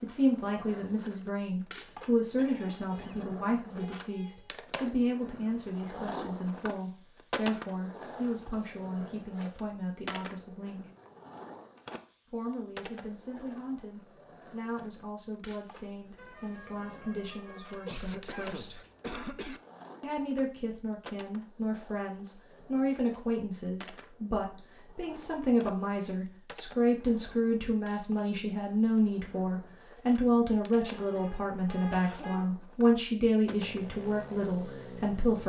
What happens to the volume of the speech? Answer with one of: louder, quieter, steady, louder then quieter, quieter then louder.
quieter then louder.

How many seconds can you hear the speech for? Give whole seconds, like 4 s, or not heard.
33 s.